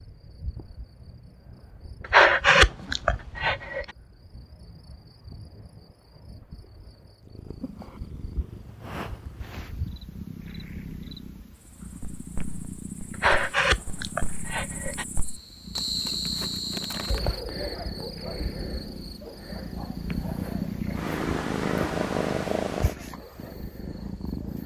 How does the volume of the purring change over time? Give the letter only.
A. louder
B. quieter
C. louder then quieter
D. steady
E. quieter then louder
A.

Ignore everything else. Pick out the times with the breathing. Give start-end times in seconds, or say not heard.
2.1-3.9, 13.2-15.1.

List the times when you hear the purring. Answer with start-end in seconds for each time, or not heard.
7.2-24.6.